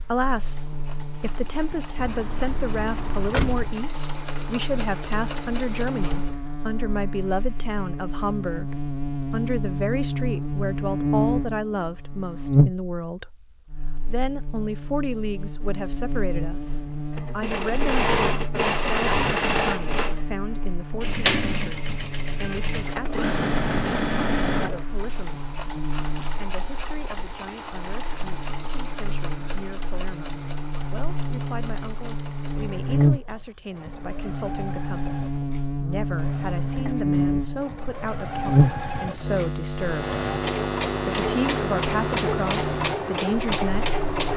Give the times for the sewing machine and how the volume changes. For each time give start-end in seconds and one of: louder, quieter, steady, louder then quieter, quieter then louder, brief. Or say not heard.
0.0-6.4 louder
17.1-44.3 quieter then louder.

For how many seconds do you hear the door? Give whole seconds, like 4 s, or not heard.
2 s.